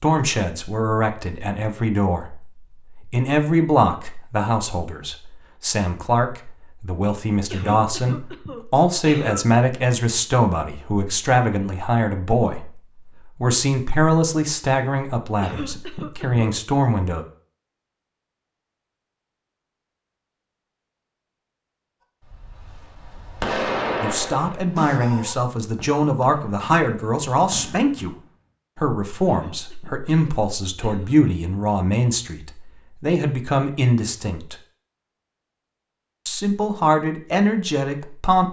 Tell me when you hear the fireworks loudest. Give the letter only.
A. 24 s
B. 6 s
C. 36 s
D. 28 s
A.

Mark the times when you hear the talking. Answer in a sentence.
The talking can be heard from 0.0 to 17.2 s, from 24.0 to 34.5 s and from 36.2 to 38.4 s.